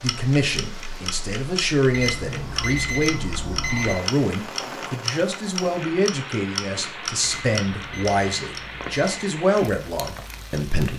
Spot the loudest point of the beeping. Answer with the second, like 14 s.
3 s.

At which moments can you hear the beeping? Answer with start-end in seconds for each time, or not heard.
1.9-4.0, 7.2-9.2.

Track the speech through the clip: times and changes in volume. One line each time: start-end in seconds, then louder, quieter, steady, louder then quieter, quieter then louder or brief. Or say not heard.
0.0-10.9 steady.